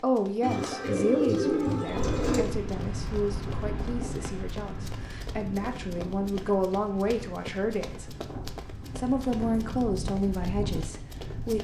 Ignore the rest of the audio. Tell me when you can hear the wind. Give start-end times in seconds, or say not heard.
1.9-11.6.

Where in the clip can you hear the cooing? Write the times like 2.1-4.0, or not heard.
0.4-2.5.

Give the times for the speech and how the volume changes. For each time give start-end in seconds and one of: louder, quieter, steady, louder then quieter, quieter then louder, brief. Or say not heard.
0.0-8.1 quieter then louder
8.9-11.6 brief.